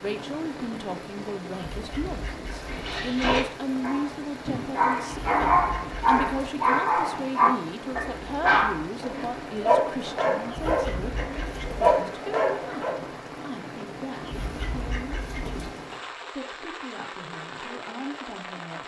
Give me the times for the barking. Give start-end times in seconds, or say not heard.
2.7-12.9.